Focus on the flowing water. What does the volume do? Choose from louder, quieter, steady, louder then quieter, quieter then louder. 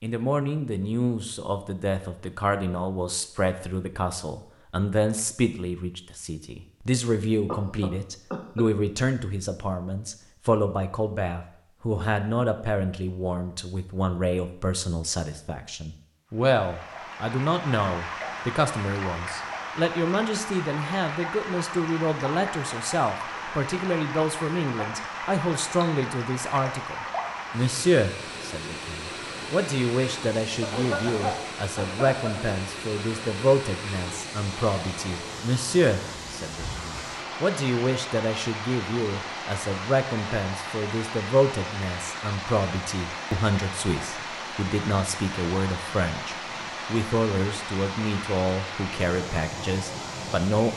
steady.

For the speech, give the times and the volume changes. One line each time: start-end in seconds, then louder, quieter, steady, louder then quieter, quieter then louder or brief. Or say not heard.
0.0-50.7 steady.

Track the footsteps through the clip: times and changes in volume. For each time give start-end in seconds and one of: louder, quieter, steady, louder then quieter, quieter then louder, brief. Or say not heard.
not heard.